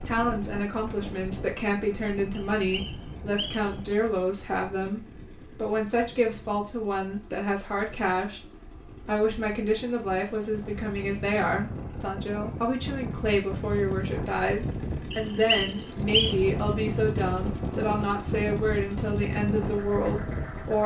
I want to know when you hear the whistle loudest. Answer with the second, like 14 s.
16 s.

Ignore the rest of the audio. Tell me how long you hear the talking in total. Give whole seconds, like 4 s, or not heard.
21 s.